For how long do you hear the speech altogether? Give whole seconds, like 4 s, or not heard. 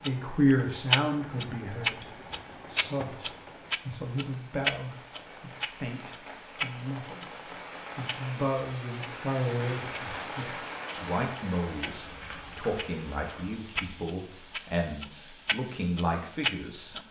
17 s.